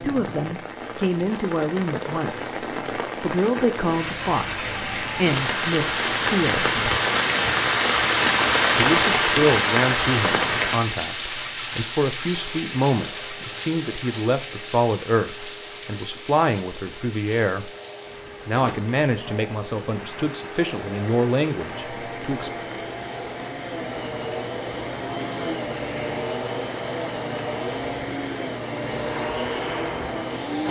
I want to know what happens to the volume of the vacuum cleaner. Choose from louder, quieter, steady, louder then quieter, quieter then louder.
louder.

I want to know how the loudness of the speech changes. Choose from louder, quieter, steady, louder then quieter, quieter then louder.
steady.